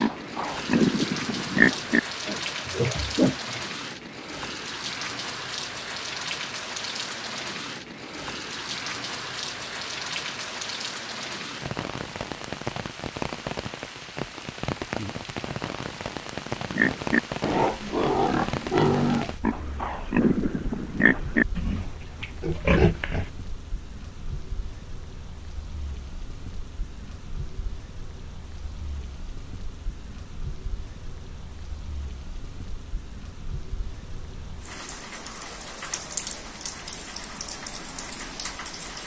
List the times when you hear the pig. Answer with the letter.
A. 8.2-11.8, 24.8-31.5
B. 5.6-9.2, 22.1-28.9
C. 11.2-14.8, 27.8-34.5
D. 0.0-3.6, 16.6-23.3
D.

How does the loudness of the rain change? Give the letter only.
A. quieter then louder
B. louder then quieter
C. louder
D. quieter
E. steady
A.